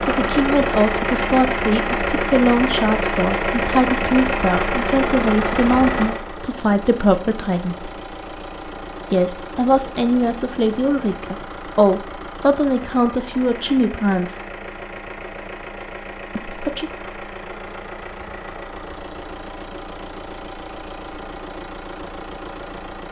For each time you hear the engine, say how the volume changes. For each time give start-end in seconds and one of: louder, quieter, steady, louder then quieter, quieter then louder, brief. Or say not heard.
0.0-23.0 quieter.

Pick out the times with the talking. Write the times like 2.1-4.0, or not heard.
0.0-7.9, 9.1-14.3, 16.4-16.9.